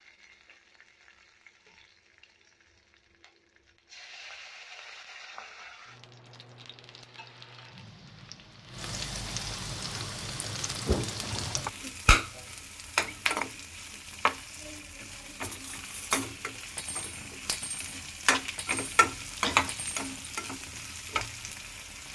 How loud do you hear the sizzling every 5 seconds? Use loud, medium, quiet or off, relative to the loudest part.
quiet, medium, loud, loud, medium.